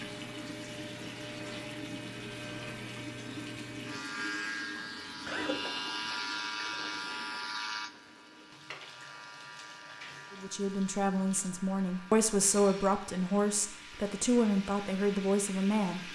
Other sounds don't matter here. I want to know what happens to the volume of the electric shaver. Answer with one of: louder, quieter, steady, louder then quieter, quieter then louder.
louder then quieter.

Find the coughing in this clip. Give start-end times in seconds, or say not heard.
4.8-5.7.